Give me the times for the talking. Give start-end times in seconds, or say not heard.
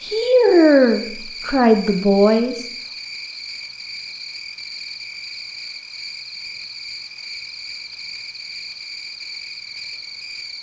0.0-2.6.